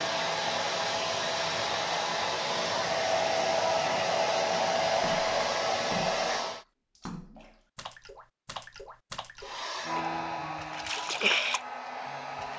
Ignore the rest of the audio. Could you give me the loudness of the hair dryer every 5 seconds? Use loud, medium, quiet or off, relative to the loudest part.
loud, loud, medium.